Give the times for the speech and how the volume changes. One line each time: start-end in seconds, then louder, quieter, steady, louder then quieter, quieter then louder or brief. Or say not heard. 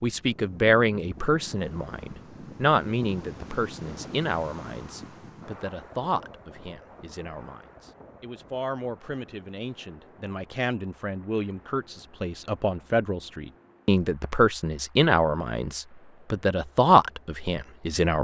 0.0-18.1 quieter then louder.